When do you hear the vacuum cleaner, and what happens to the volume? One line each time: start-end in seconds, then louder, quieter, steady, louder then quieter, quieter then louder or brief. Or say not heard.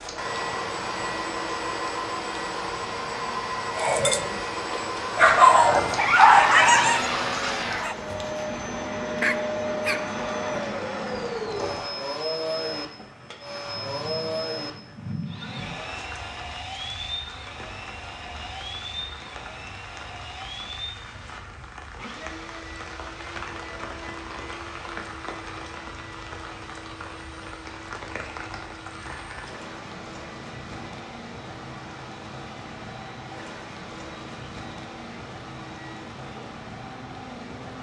0.1-37.7 quieter.